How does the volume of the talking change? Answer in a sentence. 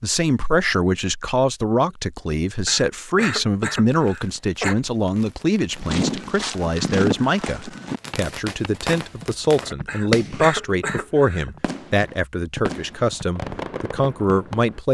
The loudness of the talking stays about the same.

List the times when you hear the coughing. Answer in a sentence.
You can hear the coughing from 2.6 to 4.8 s and from 9.8 to 11.5 s.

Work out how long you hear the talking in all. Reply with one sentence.
You can hear the talking for 15 seconds altogether.